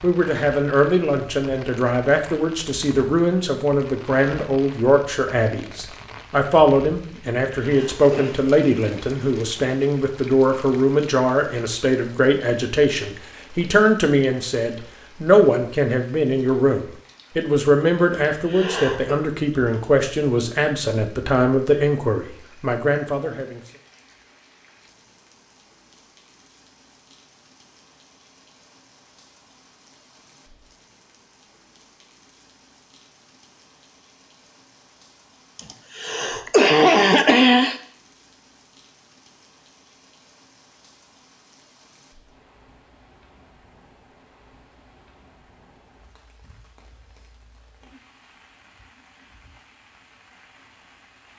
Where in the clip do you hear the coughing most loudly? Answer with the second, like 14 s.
37 s.